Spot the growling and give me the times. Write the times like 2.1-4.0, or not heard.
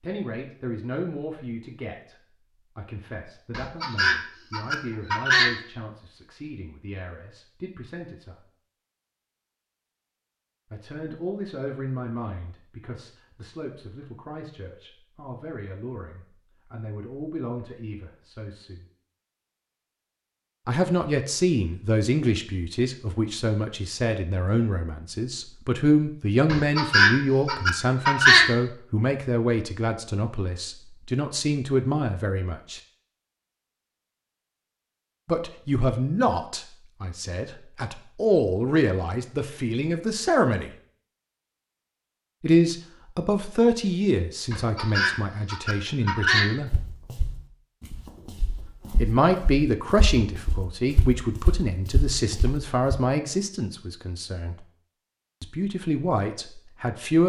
not heard.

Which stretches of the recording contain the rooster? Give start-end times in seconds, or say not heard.
3.5-5.5, 26.5-28.5, 44.5-46.5.